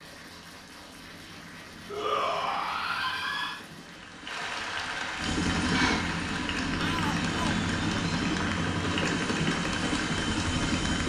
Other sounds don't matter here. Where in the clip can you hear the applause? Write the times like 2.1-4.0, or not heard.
0.0-11.0.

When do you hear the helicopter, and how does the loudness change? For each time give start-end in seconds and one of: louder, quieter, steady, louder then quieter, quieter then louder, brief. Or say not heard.
0.0-11.0 louder.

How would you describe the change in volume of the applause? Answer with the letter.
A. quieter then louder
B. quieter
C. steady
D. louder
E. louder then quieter
D.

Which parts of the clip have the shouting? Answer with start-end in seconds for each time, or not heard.
1.9-3.6, 6.8-7.6.